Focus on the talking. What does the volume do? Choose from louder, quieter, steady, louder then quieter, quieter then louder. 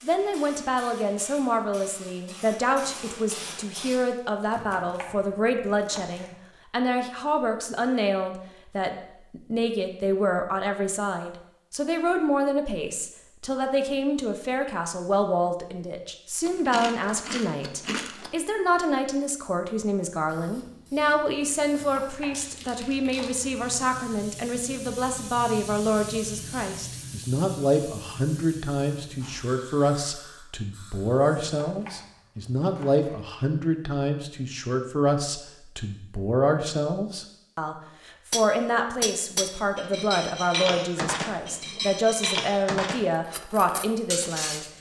steady.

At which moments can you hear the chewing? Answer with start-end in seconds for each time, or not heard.
16.4-18.4.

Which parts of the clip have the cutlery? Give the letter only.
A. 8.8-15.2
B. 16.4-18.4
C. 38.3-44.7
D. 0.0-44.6
C.